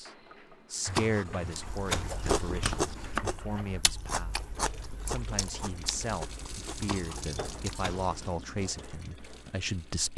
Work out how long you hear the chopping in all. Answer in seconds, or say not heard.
4 s.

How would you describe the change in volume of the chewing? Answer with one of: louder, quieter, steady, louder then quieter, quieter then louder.
quieter.